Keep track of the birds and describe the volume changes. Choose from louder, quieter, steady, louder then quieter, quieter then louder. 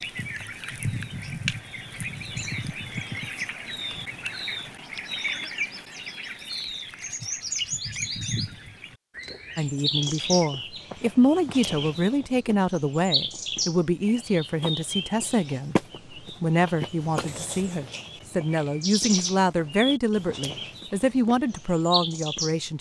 steady.